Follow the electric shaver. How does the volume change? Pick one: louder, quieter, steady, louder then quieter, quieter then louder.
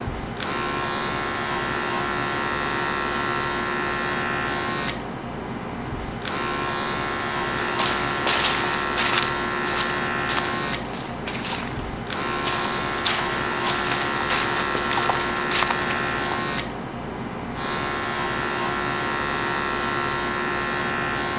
steady.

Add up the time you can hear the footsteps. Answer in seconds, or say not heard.
9 s.